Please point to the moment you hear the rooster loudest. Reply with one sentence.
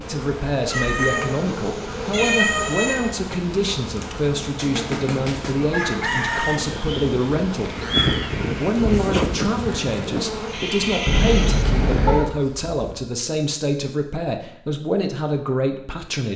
The loudest moment of the rooster is at 6 seconds.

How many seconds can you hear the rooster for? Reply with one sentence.
You can hear the rooster for 2 seconds altogether.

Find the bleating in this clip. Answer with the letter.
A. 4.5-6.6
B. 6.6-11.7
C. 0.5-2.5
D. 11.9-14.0
B.